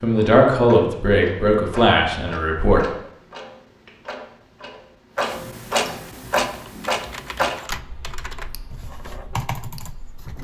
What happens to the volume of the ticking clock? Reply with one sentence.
The volume of the ticking clock goes up, then down.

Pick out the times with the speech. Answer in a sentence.
The speech can be heard from 0.0 to 2.8 s.